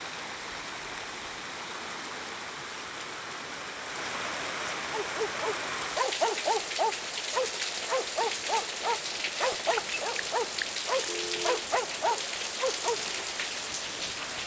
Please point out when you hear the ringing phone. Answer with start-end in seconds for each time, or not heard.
9.5-11.7.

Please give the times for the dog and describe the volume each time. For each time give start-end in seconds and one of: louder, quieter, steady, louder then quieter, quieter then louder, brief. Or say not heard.
5.0-13.0 steady.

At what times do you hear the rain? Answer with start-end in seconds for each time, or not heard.
0.0-14.4.